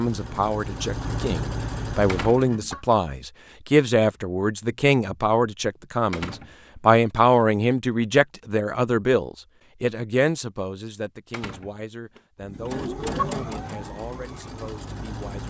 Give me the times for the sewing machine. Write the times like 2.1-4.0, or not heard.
0.0-2.8, 12.4-15.4.